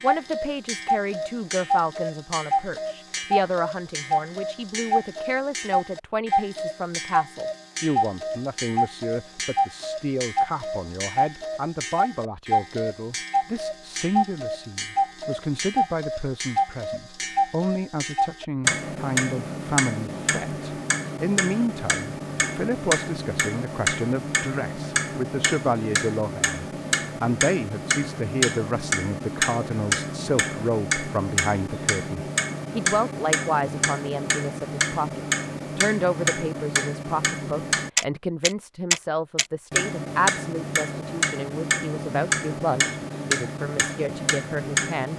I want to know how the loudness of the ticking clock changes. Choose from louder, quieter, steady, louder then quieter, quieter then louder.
steady.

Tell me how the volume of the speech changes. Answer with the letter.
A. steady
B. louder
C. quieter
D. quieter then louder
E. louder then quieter
A.